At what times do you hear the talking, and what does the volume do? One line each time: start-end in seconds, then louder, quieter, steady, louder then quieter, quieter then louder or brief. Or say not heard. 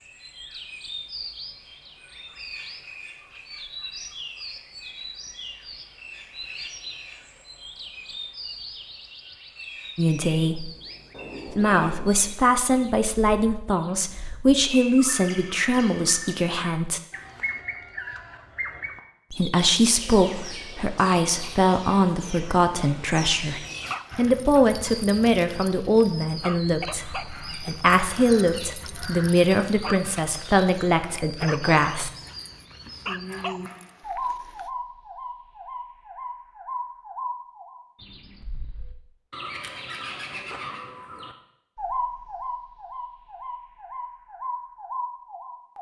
9.9-10.7 brief
11.5-17.0 steady
19.3-32.1 steady.